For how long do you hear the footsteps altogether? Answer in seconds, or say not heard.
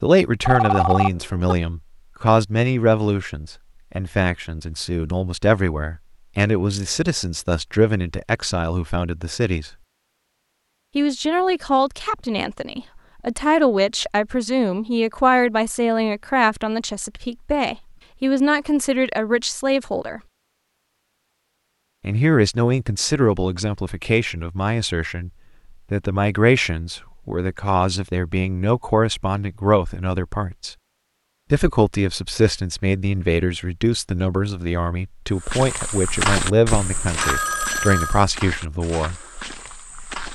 5 s.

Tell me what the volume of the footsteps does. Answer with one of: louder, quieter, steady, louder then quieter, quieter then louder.
quieter.